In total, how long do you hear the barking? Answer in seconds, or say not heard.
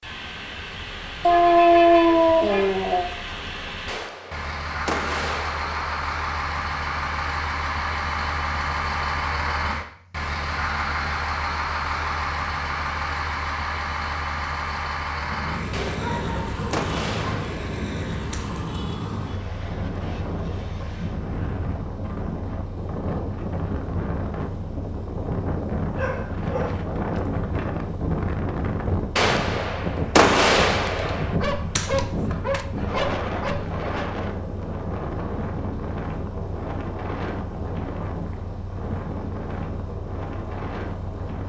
8 s.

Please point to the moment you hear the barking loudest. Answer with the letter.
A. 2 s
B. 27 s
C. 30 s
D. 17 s
A.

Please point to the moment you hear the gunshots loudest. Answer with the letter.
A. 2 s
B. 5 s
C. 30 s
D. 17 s
C.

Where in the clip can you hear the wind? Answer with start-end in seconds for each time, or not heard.
15.2-41.4.